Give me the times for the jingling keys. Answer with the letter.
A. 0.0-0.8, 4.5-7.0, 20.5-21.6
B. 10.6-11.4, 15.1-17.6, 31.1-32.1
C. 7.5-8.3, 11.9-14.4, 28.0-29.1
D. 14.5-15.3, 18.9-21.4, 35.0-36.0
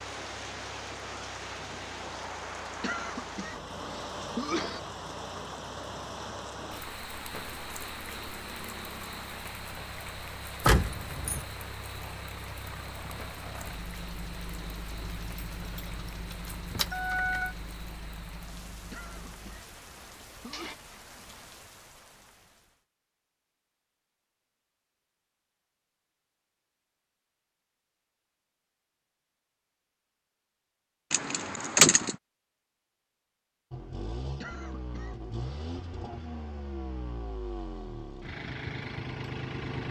B.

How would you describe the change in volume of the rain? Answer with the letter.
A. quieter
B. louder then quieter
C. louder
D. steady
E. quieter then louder
A.